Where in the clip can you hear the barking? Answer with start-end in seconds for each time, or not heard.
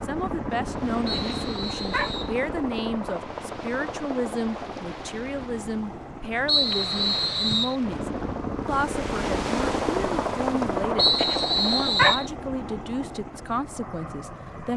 1.1-2.1, 11.2-12.2.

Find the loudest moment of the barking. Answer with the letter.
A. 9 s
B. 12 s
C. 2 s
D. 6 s
B.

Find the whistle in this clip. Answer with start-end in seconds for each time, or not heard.
1.1-2.4, 6.5-7.8, 10.9-12.3.